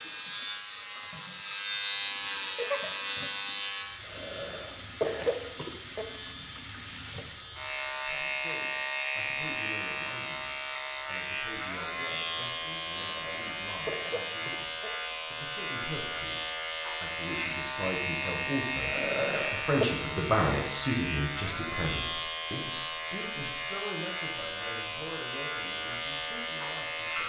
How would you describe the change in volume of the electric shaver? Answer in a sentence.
The loudness of the electric shaver stays about the same.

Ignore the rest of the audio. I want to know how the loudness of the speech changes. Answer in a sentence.
The volume of the speech goes up, then down.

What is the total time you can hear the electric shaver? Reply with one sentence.
The electric shaver can be heard for 27 seconds in total.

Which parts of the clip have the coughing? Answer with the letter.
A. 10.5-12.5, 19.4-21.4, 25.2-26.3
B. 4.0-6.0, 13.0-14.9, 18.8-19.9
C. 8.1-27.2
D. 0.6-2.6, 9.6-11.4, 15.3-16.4
B.